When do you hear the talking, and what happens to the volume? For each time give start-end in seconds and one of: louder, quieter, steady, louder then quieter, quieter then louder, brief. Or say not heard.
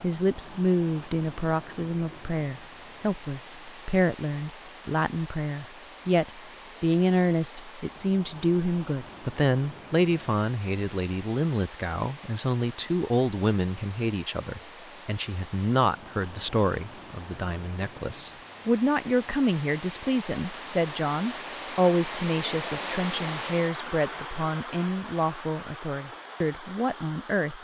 0.0-27.5 steady.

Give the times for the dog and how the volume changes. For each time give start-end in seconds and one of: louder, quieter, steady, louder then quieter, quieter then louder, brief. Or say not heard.
not heard.